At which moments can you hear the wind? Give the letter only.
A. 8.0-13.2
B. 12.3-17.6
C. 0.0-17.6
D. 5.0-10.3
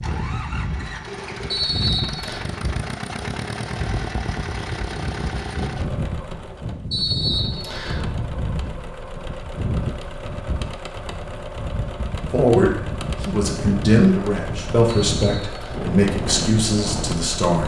C.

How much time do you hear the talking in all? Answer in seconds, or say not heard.
5 s.